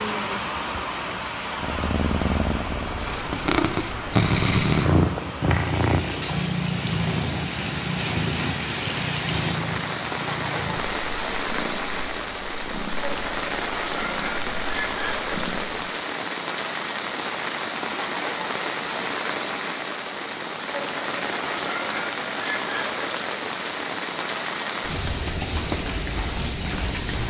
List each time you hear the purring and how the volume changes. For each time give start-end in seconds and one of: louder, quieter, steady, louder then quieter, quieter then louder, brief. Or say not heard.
1.6-15.9 quieter.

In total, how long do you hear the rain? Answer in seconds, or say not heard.
27 s.